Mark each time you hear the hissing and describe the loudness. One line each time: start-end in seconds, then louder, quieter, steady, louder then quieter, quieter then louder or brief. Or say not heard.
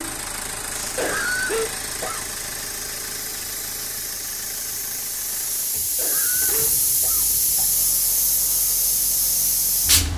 0.0-10.1 louder.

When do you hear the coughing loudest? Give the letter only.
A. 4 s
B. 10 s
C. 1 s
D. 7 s
C.